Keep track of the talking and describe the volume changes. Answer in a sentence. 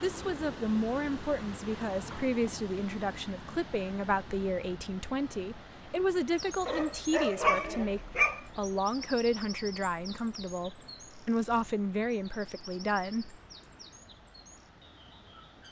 The loudness of the talking stays about the same.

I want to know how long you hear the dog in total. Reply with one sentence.
You can hear the dog for 2 seconds altogether.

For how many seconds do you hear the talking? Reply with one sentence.
The talking can be heard for 13 seconds in total.